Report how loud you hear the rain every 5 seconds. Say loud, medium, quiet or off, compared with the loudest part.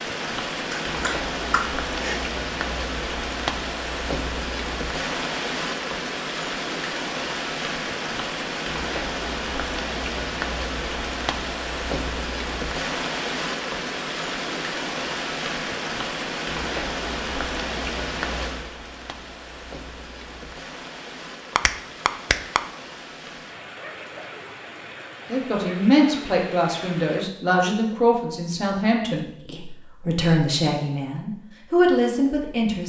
loud, loud, loud, loud, medium, medium, off.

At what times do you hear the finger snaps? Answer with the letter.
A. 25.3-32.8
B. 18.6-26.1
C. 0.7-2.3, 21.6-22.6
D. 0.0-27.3
C.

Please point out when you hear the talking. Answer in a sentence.
You can hear the talking from 25.3 to 32.8 s.